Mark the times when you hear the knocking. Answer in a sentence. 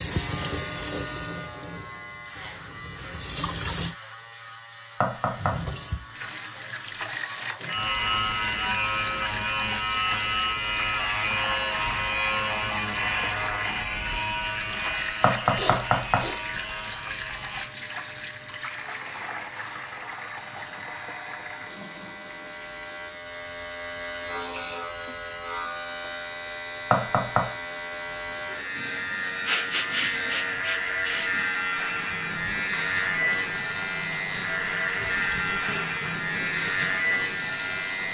You can hear the knocking from 5.0 to 5.5 s, from 15.2 to 16.3 s and from 26.9 to 27.4 s.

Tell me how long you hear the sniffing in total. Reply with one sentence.
You can hear the sniffing for 3 seconds altogether.